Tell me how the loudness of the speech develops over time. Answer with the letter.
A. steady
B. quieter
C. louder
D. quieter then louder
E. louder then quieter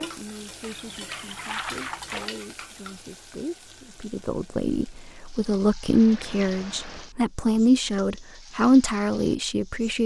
C.